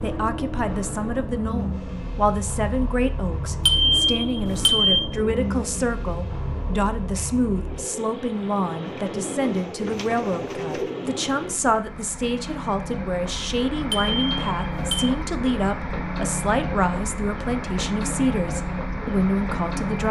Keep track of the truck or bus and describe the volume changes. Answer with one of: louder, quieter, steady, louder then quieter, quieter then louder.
quieter then louder.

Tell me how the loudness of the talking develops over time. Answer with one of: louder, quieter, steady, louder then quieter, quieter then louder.
steady.